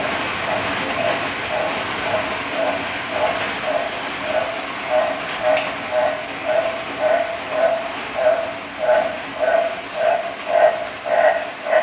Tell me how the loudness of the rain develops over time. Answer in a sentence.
The loudness of the rain goes down.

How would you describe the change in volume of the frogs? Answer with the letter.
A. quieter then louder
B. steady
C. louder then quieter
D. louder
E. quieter
D.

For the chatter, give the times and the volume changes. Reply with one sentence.
The chatter can't be heard in this clip.